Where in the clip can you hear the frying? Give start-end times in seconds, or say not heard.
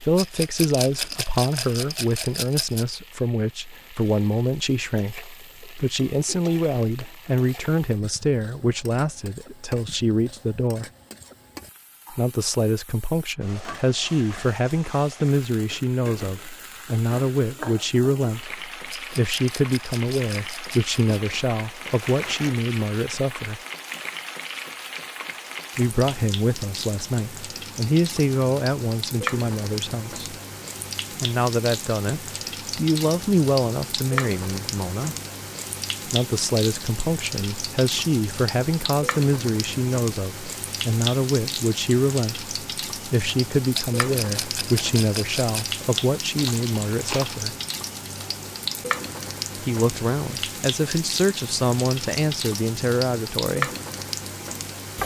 0.0-55.0.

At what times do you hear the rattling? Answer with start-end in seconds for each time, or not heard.
0.1-2.9, 18.9-20.9, 43.7-45.8.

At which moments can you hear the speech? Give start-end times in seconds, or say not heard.
0.0-10.9, 12.1-23.6, 25.8-30.4, 31.2-35.1, 36.0-47.5, 49.6-53.7.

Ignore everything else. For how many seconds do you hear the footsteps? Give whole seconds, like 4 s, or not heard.
not heard.